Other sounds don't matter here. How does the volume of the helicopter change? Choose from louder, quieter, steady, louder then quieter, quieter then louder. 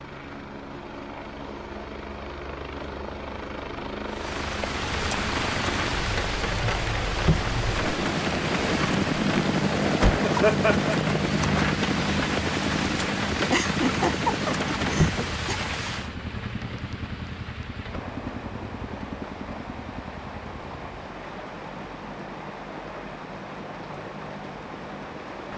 louder then quieter.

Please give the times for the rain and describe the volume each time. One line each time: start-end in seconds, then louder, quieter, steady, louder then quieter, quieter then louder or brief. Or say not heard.
4.0-25.5 quieter.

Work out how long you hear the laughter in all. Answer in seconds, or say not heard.
3 s.